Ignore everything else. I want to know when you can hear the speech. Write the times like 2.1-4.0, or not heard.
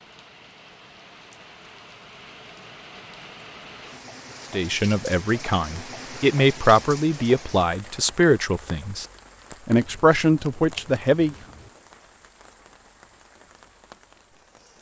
4.5-9.1, 9.7-11.3.